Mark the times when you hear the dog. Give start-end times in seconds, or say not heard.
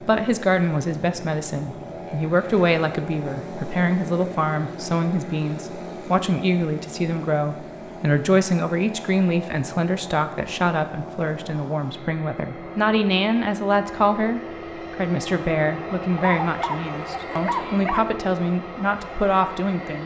16.1-18.1.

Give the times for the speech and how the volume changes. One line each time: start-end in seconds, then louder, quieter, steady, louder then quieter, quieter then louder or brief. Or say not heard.
0.0-20.0 steady.